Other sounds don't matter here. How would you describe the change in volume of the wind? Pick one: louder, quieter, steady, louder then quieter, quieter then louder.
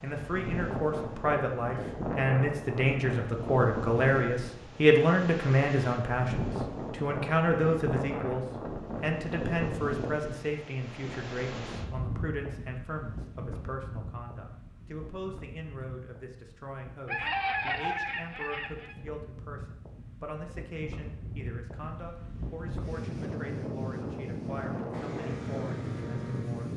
quieter then louder.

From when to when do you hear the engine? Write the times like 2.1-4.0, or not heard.
24.9-26.7.